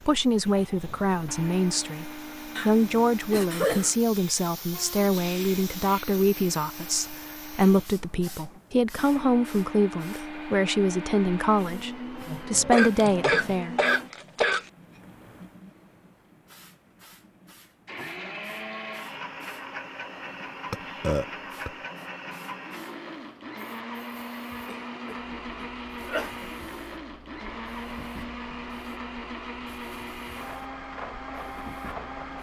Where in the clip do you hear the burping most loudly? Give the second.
21 s.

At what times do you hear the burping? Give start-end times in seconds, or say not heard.
12.2-12.8, 20.7-21.7.